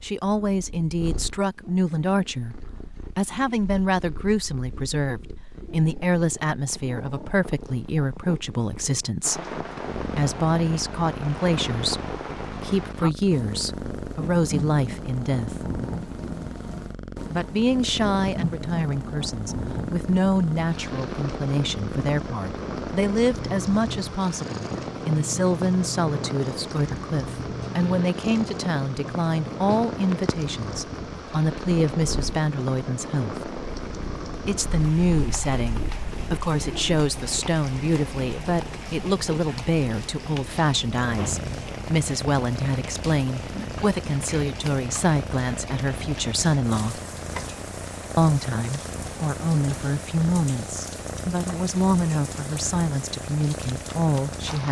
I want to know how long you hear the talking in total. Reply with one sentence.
The talking can be heard for 50 seconds in total.